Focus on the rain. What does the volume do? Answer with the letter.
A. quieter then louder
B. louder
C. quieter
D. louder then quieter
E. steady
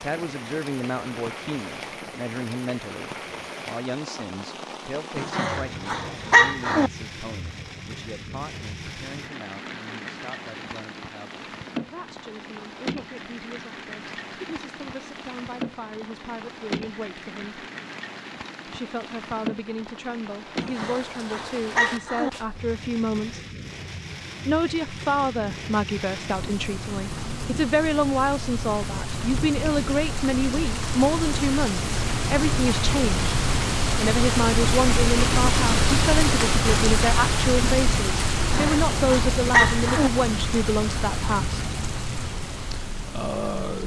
B.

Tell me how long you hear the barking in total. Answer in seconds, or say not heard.
5 s.